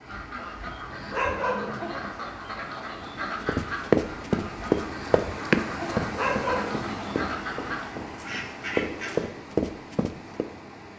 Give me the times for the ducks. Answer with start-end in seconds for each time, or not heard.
0.0-9.2.